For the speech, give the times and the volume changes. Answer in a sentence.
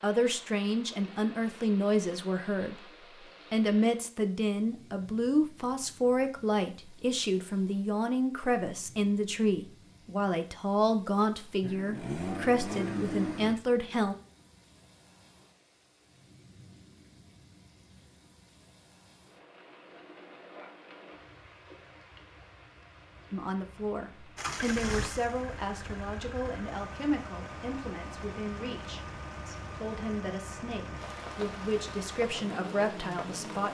The speech can be heard briefly from 0.0 to 2.8 s; from 3.5 to 14.2 s, at a steady volume; and from 23.3 to 33.6 s, getting quieter then louder.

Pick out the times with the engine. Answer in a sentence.
The engine can be heard from 11.6 to 13.6 s and from 24.4 to 33.6 s.